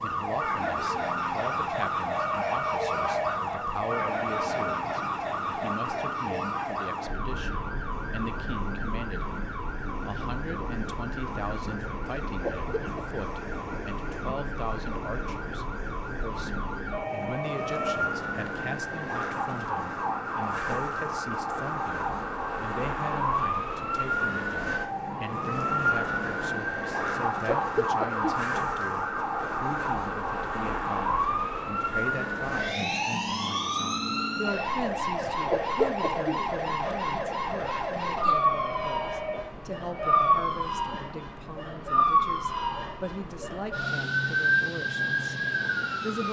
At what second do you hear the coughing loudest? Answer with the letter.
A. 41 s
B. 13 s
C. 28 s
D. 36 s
D.